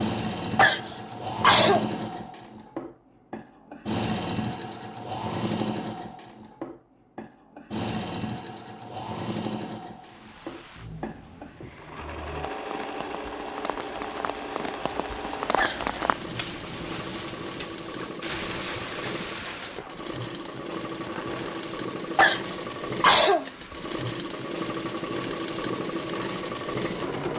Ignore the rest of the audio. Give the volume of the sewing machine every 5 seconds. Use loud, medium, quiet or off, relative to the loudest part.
loud, loud, medium, medium, loud, loud.